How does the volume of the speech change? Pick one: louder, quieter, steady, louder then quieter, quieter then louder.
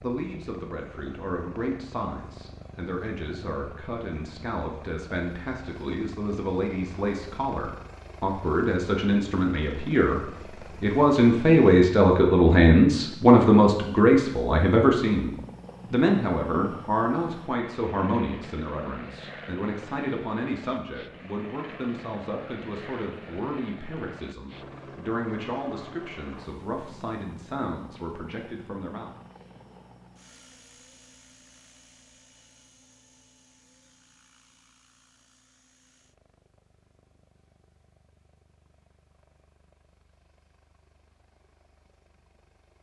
louder then quieter.